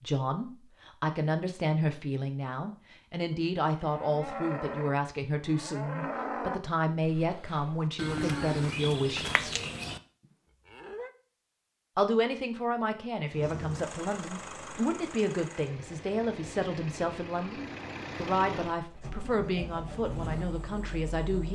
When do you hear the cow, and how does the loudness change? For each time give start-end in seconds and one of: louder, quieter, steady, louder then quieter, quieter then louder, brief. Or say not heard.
3.7-10.0 steady
10.7-11.1 brief.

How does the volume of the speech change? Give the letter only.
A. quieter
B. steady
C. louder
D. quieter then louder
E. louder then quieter
B.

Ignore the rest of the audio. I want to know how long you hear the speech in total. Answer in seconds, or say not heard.
19 s.